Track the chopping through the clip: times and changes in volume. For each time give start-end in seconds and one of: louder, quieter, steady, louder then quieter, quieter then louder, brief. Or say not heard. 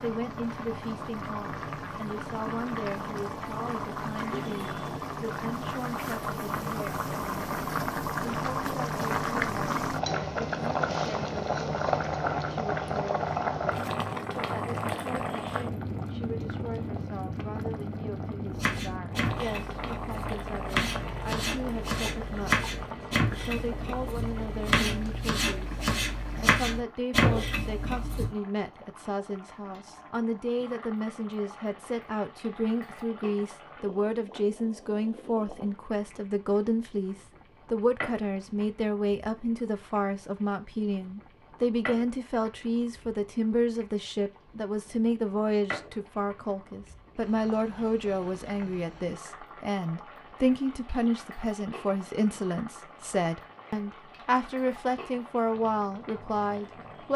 18.5-28.3 louder.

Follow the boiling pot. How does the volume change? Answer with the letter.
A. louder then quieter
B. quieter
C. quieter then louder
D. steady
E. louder
B.